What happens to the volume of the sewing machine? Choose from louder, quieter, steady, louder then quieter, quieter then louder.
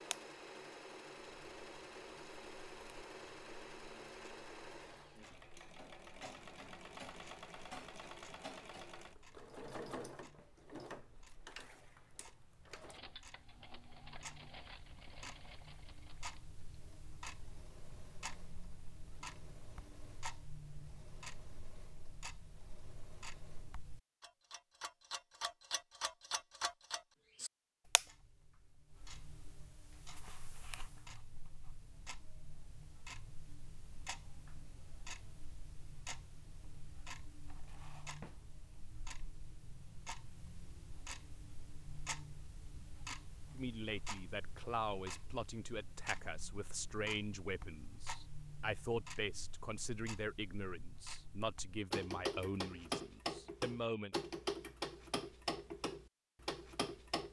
quieter.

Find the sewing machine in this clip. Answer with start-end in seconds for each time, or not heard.
0.0-23.8.